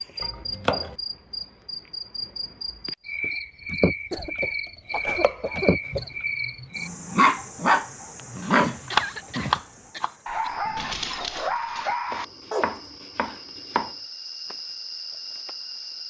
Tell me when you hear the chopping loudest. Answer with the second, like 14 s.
9 s.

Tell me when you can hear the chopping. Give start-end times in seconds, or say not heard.
0.2-0.9, 4.3-6.0, 8.4-10.1, 12.1-13.9.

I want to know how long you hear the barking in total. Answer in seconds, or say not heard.
7 s.